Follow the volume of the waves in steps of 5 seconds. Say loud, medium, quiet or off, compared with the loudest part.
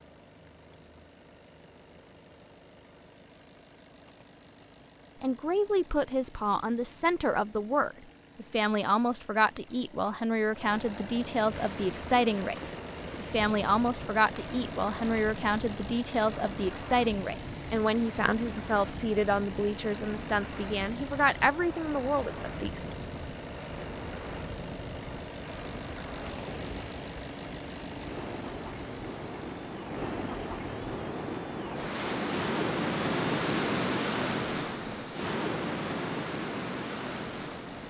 off, off, quiet, quiet, quiet, medium, loud, loud.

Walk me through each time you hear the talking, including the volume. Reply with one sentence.
You can hear the talking from 5.2 to 22.9 s, at a steady volume.